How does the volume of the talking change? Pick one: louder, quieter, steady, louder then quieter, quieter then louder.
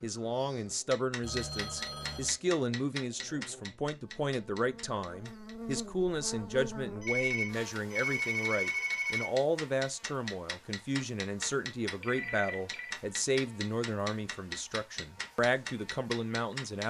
steady.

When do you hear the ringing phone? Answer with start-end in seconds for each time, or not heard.
1.2-2.4, 7.0-9.3, 12.0-12.9.